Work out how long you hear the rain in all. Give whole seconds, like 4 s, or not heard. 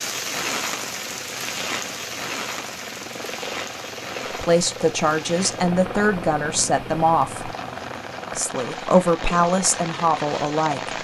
11 s.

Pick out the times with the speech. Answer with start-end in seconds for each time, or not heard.
4.3-7.5, 8.3-10.9.